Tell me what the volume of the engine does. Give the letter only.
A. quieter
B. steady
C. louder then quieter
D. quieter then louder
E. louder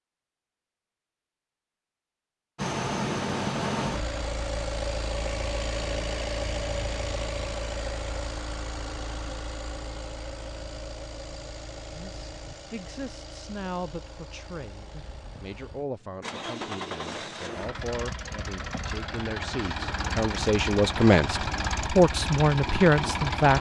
D.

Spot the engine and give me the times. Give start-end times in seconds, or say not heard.
2.5-23.5.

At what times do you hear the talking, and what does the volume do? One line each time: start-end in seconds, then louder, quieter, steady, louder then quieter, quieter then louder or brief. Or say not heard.
11.9-23.5 louder.